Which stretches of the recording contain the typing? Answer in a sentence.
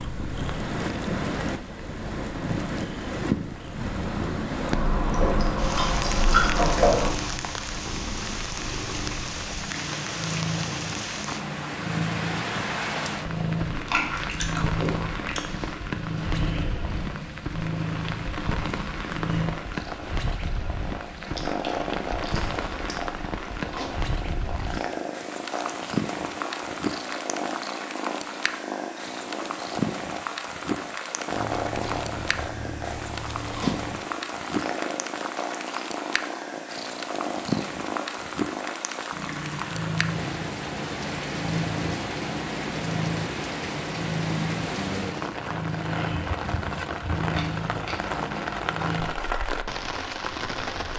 The typing can't be heard in this clip.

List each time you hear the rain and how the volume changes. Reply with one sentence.
The rain can be heard from 0.0 to 50.9 s, at a steady volume.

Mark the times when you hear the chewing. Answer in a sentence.
You can hear the chewing from 4.7 to 7.1 s, from 13.7 to 15.4 s, from 21.1 to 23.1 s, from 31.3 to 34.0 s and from 47.2 to 48.7 s.